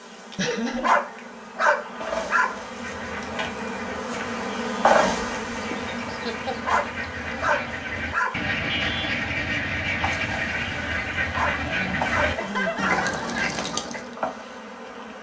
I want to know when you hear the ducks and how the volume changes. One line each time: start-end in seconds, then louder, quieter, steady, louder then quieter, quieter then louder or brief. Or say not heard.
2.5-14.2 louder.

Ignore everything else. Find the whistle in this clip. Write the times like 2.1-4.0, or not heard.
not heard.